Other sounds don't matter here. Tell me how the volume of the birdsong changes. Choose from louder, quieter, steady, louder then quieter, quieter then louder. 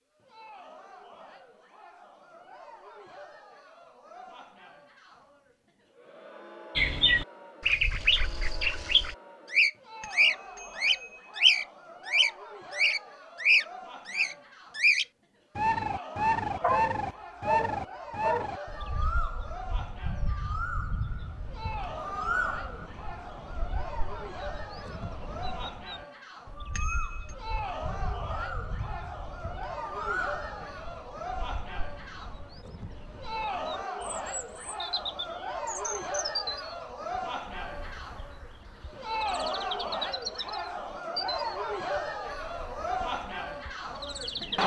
quieter.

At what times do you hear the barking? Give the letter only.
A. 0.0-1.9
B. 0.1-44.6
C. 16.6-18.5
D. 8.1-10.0
C.